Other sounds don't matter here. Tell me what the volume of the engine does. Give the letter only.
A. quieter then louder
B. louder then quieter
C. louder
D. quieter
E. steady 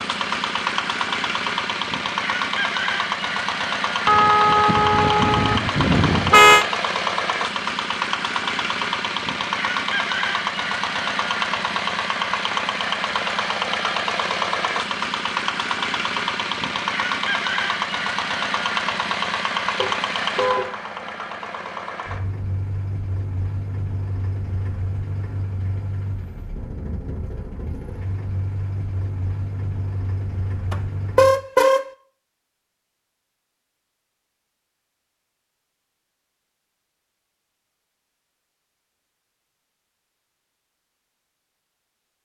D.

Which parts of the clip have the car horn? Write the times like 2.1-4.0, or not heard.
4.0-6.7, 19.8-20.7, 30.7-31.9.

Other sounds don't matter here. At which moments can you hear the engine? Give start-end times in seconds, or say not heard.
0.0-31.4.